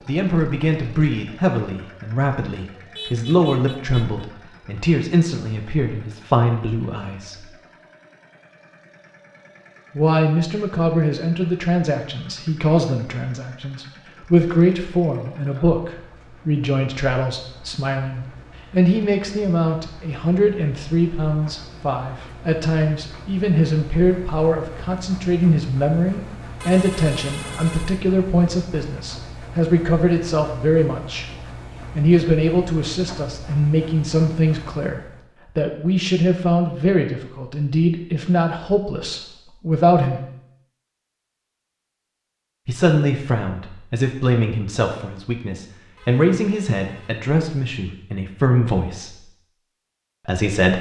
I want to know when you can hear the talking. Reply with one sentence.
You can hear the talking from 0.1 to 7.5 s, from 9.9 to 40.2 s, from 42.6 to 49.2 s and from 50.2 to 50.7 s.